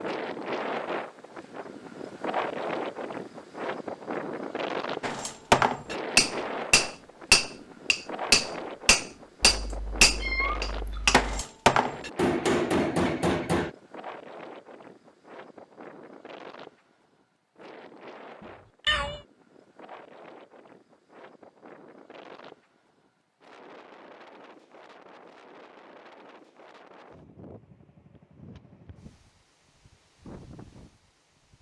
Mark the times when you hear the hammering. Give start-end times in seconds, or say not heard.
5.0-13.7.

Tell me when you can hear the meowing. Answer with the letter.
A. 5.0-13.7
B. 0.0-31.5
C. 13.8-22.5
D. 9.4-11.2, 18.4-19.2
D.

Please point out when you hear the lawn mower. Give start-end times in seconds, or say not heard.
not heard.